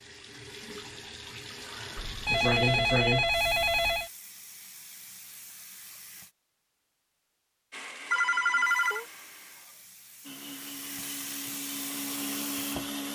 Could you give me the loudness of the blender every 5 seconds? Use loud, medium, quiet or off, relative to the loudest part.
off, medium, loud.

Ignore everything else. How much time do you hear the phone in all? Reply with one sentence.
The phone can be heard for 3 seconds in total.